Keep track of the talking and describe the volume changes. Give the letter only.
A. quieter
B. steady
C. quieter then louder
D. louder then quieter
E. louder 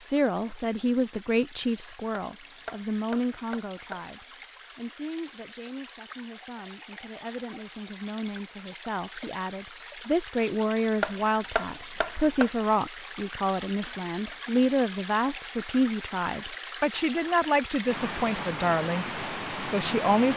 C.